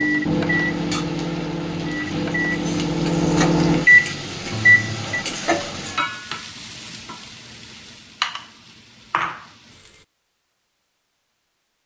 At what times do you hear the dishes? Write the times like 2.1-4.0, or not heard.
not heard.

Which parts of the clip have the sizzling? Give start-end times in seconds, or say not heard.
0.0-10.1.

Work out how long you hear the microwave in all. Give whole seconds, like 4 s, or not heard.
5 s.